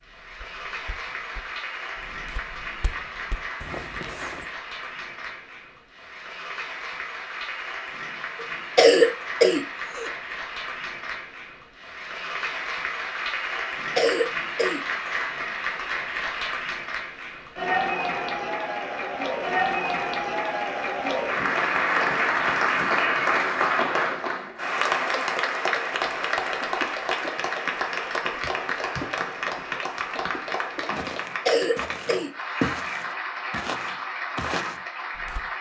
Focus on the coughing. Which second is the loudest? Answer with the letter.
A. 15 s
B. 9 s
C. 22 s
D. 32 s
B.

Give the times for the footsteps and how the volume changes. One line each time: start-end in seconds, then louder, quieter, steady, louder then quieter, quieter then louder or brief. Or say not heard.
0.0-4.5 louder
25.9-35.5 louder.